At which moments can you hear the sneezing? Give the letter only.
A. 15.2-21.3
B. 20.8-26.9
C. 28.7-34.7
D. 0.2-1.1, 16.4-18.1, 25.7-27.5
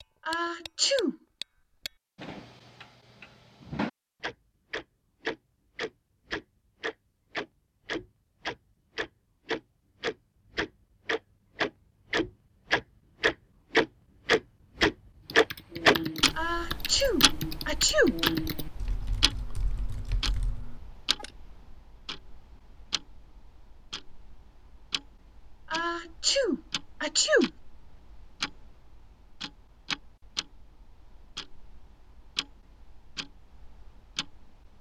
D.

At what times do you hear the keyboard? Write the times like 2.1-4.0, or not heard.
15.2-21.3.